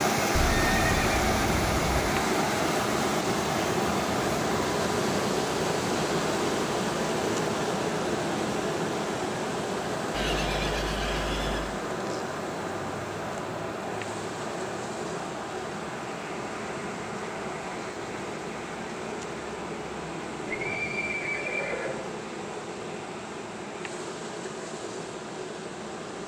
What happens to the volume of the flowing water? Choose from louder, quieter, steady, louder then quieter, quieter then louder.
quieter.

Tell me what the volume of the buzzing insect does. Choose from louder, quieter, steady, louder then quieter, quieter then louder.
quieter.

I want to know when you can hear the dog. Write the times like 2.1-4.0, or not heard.
not heard.